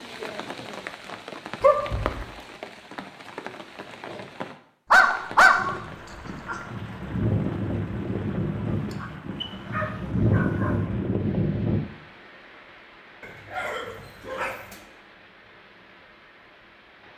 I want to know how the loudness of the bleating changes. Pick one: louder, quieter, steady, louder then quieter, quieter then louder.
louder.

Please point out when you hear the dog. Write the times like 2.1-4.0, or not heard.
1.6-2.2, 4.9-6.6, 8.7-10.8, 13.2-14.8.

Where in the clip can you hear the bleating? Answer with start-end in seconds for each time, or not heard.
5.5-11.8.